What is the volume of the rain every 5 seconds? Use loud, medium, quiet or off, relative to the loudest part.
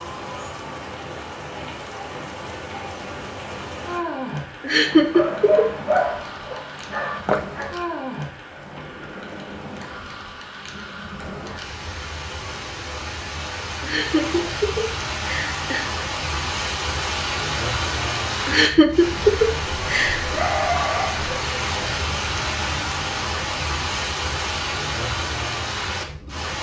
medium, medium, medium, loud, loud, loud.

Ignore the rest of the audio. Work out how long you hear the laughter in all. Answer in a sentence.
The laughter can be heard for 5 seconds in total.